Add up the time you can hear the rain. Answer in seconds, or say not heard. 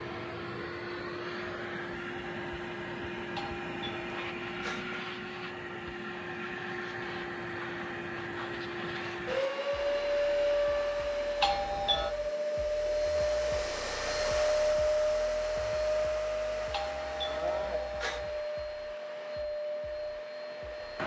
not heard.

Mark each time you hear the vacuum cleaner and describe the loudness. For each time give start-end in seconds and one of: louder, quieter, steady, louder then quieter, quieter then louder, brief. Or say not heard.
0.0-21.0 louder then quieter.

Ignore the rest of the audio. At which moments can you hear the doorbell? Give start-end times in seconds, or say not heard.
3.4-5.0, 11.4-12.2, 16.7-18.4.